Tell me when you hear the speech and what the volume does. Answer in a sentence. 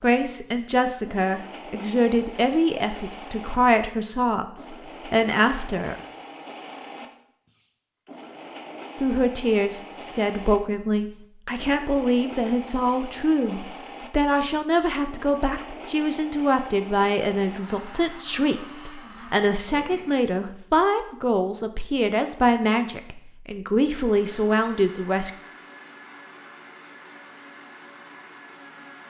You can hear the speech from 0.0 to 6.0 s, at a steady volume; and from 9.0 to 25.3 s, at a steady volume.